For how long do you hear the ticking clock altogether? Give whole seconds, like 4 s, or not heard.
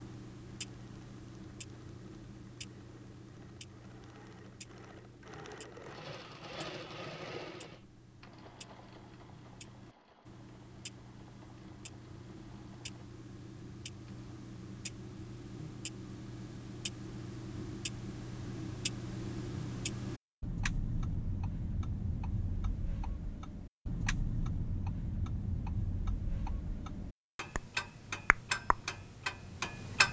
30 s.